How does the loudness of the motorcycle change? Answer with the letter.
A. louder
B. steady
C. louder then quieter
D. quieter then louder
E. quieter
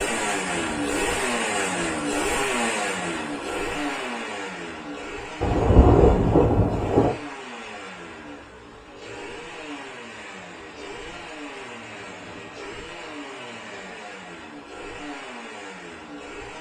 E.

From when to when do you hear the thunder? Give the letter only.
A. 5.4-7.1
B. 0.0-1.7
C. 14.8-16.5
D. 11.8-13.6
A.